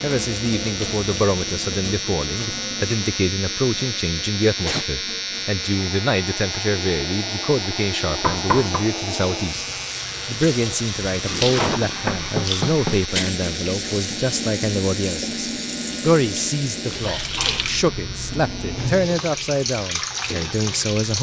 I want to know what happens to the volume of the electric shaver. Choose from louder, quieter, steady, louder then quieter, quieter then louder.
quieter.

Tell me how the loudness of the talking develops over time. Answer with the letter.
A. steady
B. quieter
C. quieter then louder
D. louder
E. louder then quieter
A.